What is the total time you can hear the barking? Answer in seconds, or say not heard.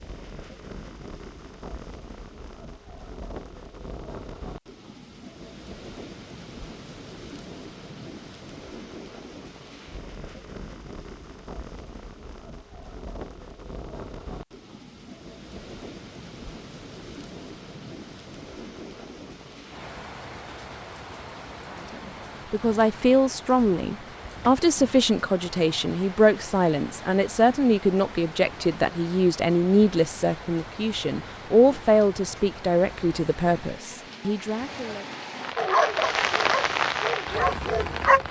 3 s.